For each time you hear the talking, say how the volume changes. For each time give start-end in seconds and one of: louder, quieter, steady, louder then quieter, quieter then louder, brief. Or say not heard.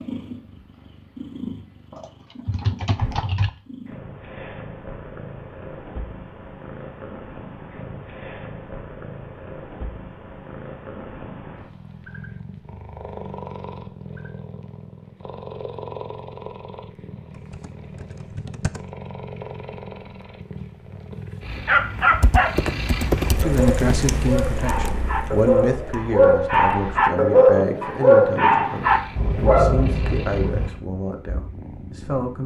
23.2-32.4 quieter.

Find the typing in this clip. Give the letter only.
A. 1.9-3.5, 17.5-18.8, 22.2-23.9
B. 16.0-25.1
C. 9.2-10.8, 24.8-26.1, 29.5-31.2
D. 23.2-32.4
A.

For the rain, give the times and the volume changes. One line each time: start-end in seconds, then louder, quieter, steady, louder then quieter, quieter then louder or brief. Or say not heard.
not heard.